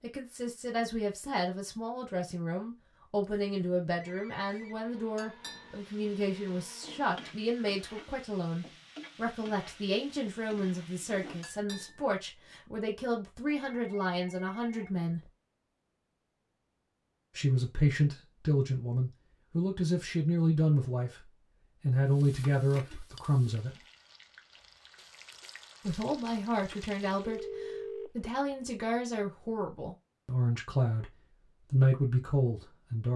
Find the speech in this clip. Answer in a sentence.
You can hear the speech from 0.0 to 15.2 s, from 17.4 to 23.8 s and from 25.9 to 33.1 s.